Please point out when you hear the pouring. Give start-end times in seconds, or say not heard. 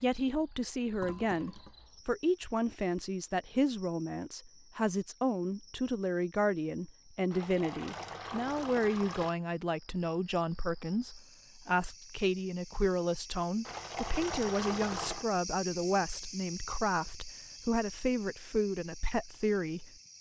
1.0-1.8, 7.3-9.3, 13.7-15.2.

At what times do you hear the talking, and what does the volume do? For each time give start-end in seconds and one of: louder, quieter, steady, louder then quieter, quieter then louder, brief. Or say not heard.
0.0-19.9 steady.